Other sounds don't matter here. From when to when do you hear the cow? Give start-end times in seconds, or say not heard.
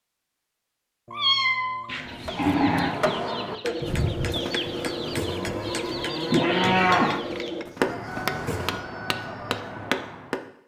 1.9-8.8.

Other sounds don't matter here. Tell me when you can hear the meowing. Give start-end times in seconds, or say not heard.
1.1-2.6, 6.3-7.2.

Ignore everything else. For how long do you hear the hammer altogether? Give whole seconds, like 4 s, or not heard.
8 s.